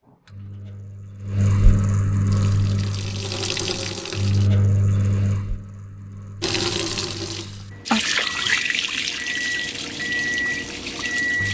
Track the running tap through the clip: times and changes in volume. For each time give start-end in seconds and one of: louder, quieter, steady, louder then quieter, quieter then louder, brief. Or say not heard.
2.3-4.5 brief
6.4-11.4 louder then quieter.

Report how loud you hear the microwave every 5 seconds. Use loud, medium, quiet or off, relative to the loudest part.
loud, medium, loud.